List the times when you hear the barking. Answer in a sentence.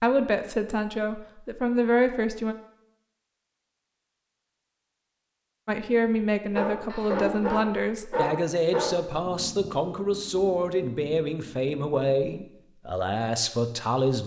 You can hear the barking from 6.5 to 8.9 s.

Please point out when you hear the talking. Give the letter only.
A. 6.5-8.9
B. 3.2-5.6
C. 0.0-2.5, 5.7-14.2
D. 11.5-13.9
C.